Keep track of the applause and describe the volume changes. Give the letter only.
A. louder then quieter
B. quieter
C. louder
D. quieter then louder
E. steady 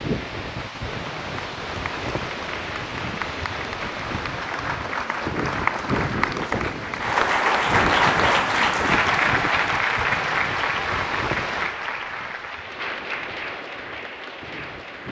A.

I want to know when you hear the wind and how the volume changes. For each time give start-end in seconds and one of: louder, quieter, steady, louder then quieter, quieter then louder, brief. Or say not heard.
0.0-15.0 quieter.